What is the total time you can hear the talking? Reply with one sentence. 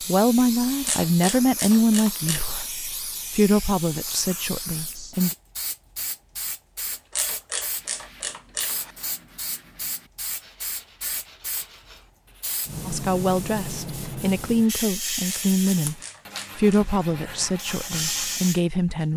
The talking can be heard for 11 seconds in total.